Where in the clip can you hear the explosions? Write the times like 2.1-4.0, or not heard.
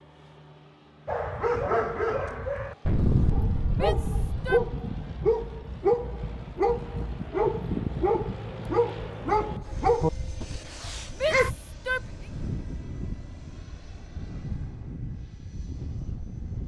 2.9-4.5.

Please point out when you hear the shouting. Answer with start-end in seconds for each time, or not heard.
3.7-4.6, 11.1-12.2.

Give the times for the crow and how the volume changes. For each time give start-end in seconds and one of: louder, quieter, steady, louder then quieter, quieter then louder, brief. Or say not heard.
not heard.